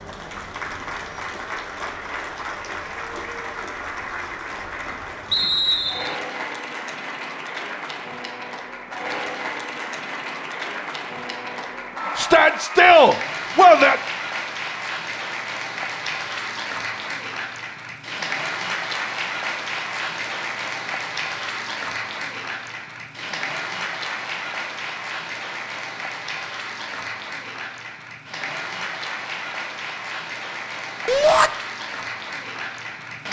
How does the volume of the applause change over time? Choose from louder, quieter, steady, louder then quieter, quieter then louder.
steady.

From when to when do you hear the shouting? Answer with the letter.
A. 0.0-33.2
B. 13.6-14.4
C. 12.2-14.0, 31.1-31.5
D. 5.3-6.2
C.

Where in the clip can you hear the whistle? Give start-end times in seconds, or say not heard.
5.3-6.2.